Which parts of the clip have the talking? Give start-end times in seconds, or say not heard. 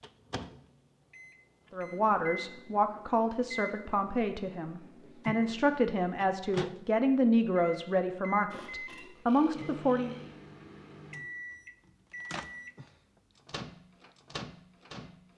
1.7-10.2.